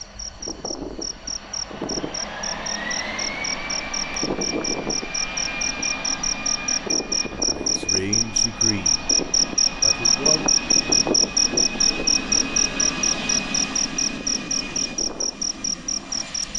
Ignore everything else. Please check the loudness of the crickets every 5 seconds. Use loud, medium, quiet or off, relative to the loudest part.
medium, loud, loud, medium.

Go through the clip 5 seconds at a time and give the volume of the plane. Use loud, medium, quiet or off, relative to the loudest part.
loud, loud, loud, medium.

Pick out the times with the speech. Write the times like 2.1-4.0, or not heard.
7.3-9.1, 9.8-10.4.